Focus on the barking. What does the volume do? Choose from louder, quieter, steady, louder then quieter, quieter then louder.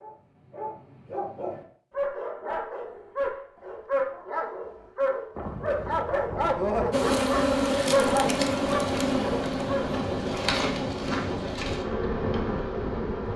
louder.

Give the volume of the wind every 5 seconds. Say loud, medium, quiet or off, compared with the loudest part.
off, loud, loud.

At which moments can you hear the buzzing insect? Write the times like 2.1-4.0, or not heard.
6.9-13.3.